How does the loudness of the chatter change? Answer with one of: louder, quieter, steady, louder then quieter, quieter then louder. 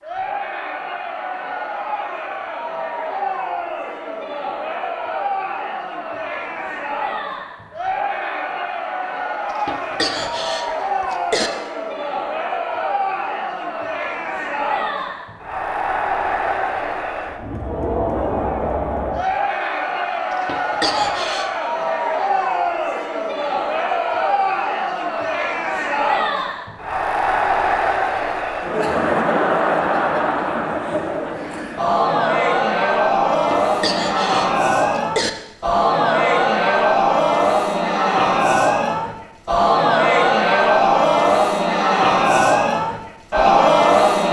louder.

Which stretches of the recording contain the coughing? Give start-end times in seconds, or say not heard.
9.7-11.5, 20.3-21.5, 33.3-35.3.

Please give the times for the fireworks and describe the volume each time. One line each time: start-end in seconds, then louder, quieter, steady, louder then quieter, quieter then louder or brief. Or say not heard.
not heard.